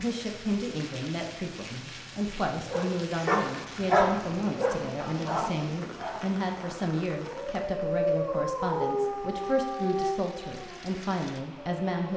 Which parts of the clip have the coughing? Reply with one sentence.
You can't hear the coughing here.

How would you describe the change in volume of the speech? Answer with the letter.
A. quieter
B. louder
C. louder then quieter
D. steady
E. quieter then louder
D.